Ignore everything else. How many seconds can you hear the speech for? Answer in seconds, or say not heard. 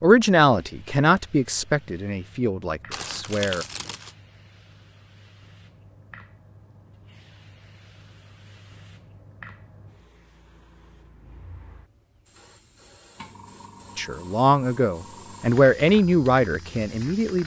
7 s.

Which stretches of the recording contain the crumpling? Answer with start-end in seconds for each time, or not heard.
2.9-4.2.